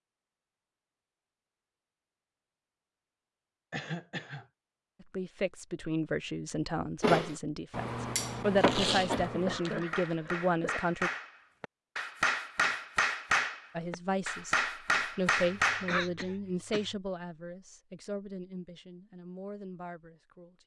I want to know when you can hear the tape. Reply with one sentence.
You can hear the tape from 8.6 to 9.7 s.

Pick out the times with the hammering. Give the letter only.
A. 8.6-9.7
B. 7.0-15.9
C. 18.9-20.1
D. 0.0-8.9
B.